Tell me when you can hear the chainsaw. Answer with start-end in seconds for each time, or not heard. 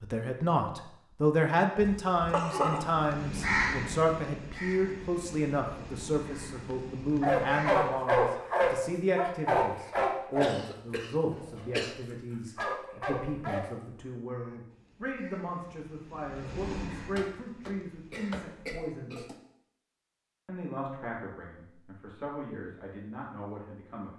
not heard.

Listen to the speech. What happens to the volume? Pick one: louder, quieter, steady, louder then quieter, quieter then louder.
quieter.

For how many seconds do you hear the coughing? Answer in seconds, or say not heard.
5 s.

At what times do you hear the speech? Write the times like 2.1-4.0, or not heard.
0.0-19.2, 20.4-24.1.